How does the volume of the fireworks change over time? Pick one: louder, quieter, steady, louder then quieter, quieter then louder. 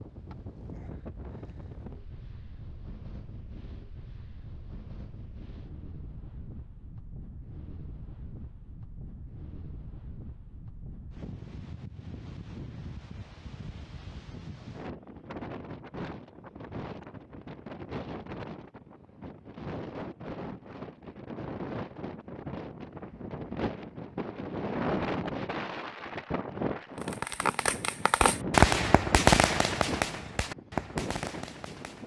louder then quieter.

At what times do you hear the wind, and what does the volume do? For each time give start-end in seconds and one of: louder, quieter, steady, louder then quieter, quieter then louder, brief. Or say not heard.
0.0-32.0 louder.